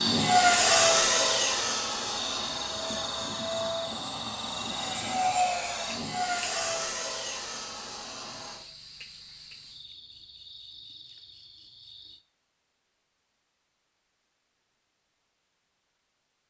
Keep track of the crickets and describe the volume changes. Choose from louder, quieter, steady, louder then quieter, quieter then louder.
quieter.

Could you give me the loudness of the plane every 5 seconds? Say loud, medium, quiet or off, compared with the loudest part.
loud, medium, off, off.